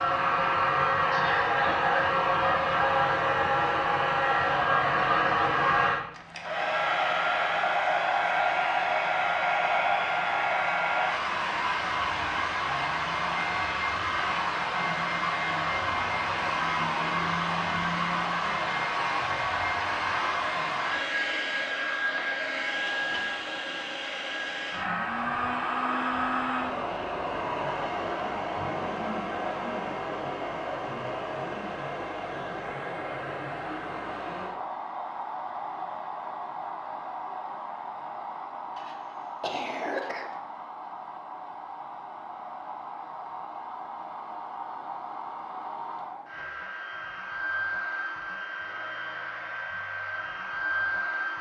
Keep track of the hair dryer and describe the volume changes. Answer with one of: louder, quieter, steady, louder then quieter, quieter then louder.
quieter.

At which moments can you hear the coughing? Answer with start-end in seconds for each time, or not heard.
1.1-1.8, 22.9-23.3, 38.8-40.4.